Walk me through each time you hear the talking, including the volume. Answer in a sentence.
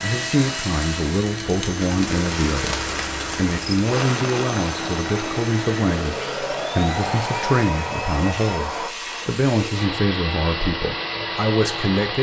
You can hear the talking from 0.0 to 12.1 s, at a steady volume.